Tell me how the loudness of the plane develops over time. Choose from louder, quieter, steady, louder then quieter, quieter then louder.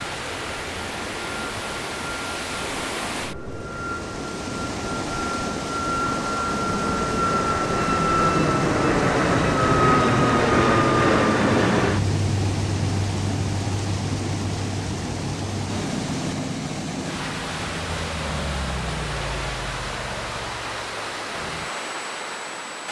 louder then quieter.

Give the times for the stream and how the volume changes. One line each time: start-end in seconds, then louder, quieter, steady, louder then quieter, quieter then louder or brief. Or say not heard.
0.0-22.8 steady.